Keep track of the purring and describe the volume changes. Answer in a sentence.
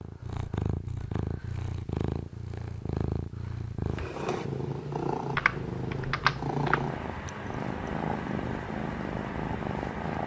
The volume of the purring stays about the same.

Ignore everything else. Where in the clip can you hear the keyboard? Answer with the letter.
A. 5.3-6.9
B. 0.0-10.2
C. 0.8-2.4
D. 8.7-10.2
A.